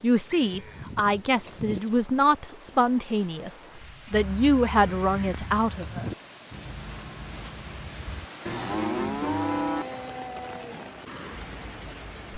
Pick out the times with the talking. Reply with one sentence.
The talking can be heard from 0.0 to 6.1 s.